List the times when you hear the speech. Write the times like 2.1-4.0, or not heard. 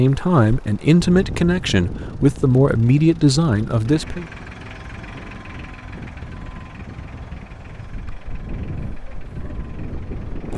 0.0-4.2.